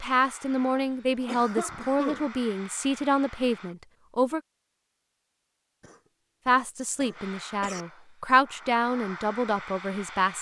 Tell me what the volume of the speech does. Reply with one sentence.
The loudness of the speech stays about the same.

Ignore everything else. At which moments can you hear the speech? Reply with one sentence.
You can hear the speech from 0.0 to 4.4 s and from 6.5 to 10.3 s.